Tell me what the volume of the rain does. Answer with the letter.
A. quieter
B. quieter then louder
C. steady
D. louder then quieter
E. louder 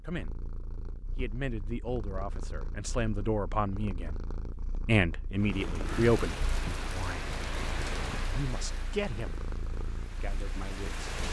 A.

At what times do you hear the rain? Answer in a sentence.
The rain can be heard from 5.3 to 11.2 s.